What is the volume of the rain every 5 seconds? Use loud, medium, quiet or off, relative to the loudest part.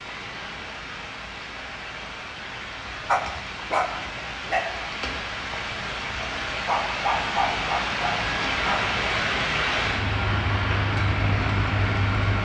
medium, loud, loud.